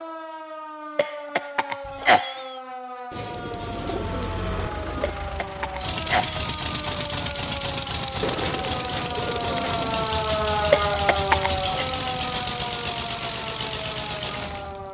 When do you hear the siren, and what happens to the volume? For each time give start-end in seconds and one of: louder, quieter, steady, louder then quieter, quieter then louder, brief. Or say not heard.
0.0-14.8 louder then quieter.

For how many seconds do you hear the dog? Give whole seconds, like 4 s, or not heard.
not heard.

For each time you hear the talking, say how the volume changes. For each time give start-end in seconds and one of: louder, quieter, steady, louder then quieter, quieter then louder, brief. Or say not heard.
not heard.